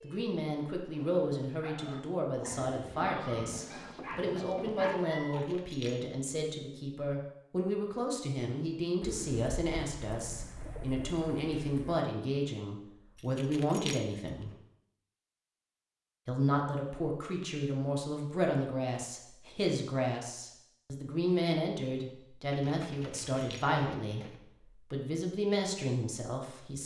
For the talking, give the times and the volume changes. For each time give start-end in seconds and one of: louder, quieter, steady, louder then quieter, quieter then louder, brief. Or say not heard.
0.0-14.5 steady
16.2-24.2 steady
24.9-26.8 brief.